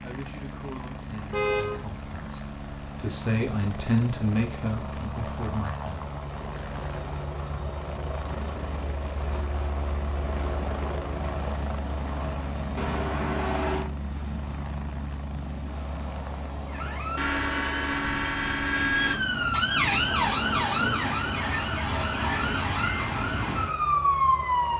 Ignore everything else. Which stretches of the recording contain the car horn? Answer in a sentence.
The car horn can be heard from 1.3 to 1.9 s, from 12.8 to 13.9 s and from 17.1 to 19.1 s.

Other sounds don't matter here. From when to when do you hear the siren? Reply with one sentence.
The siren can be heard from 16.6 to 24.7 s.